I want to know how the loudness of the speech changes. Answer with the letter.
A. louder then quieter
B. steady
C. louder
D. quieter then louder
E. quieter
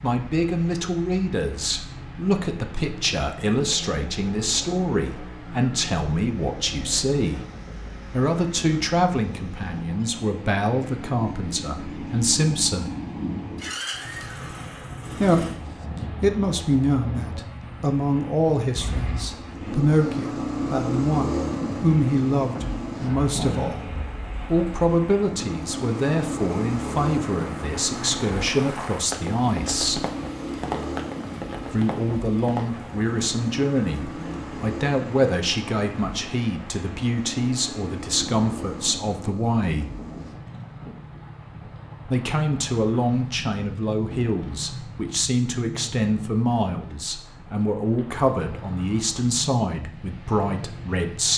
B.